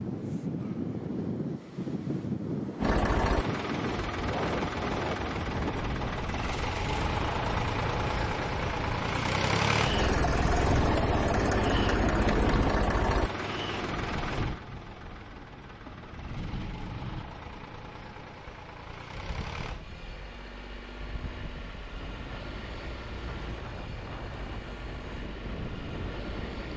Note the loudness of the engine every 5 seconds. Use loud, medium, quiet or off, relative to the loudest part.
loud, loud, loud, quiet, quiet, quiet.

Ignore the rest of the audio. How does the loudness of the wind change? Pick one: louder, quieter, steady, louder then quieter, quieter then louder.
quieter.